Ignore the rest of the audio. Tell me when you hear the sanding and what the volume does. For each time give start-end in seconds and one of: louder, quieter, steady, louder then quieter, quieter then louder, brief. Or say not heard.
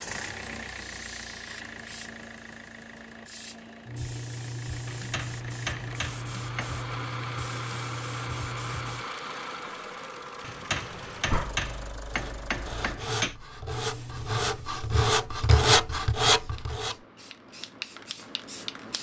11.1-16.9 louder.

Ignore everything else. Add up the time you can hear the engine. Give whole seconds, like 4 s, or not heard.
13 s.